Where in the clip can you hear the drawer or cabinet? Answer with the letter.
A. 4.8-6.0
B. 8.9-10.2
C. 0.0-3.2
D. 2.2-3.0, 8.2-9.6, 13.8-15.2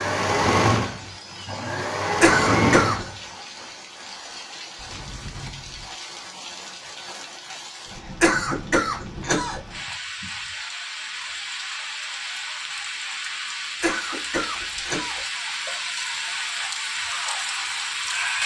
A.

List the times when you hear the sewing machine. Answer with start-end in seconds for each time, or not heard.
0.0-3.2.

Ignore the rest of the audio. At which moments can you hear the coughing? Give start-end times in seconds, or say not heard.
2.2-3.0, 8.2-9.6, 13.8-15.2.